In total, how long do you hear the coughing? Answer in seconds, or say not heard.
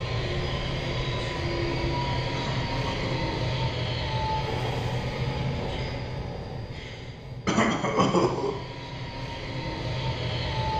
2 s.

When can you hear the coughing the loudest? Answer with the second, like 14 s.
8 s.